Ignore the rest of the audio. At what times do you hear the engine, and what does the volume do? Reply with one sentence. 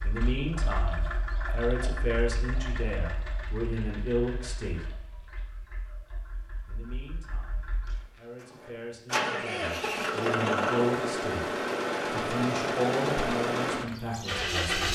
The engine can be heard from 0.0 to 14.9 s, getting quieter then louder.